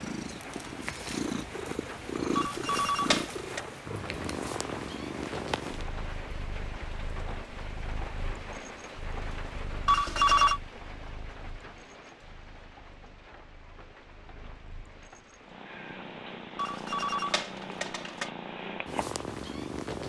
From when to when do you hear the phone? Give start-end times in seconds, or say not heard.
2.4-3.6, 9.8-10.6, 16.6-18.3.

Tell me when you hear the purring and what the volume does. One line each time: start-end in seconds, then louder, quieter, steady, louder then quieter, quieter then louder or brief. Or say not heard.
0.0-20.0 quieter then louder.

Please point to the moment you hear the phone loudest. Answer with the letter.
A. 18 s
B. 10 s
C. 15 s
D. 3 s
B.